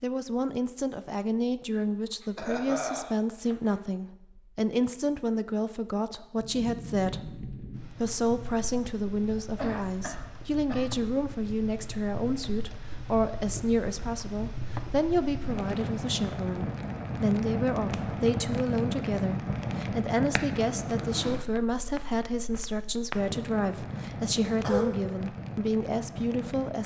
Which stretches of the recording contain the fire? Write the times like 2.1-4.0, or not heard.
6.3-26.8.